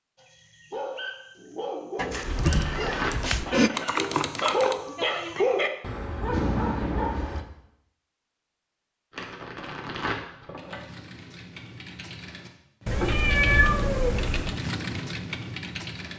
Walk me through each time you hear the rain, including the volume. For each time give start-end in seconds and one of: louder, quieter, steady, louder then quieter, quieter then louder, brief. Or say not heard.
not heard.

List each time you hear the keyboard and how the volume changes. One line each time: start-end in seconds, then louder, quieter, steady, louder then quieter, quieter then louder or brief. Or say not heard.
2.2-4.8 brief
10.6-16.1 louder.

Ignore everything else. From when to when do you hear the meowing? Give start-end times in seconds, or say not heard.
1.9-3.7, 12.8-14.6.